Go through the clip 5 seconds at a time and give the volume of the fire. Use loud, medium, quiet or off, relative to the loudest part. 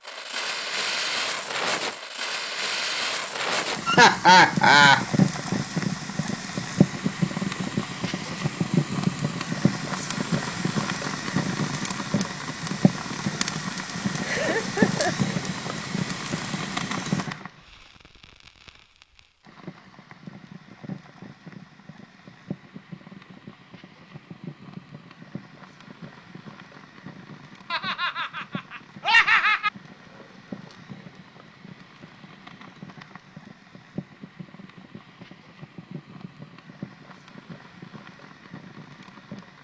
loud, loud, loud, medium, quiet, quiet, quiet, quiet.